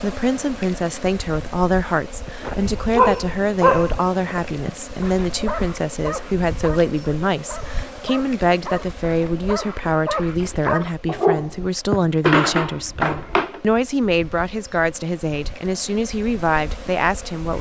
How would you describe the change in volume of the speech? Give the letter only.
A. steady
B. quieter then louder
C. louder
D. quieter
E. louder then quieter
A.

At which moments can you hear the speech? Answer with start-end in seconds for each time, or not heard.
0.0-17.5.